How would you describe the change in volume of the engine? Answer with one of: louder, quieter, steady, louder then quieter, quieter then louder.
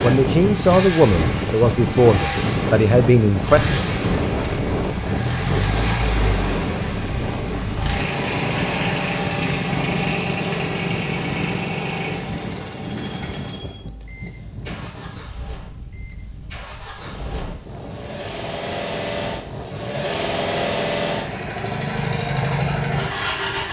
quieter then louder.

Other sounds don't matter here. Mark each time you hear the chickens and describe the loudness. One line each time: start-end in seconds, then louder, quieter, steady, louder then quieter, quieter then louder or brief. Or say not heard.
not heard.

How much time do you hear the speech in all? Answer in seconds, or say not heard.
4 s.